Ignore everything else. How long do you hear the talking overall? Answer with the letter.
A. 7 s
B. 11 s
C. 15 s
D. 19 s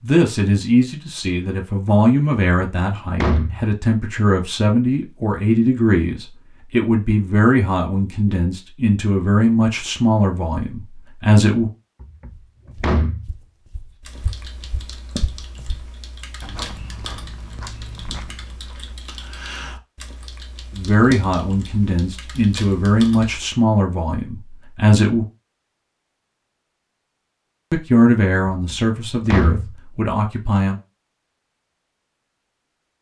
D.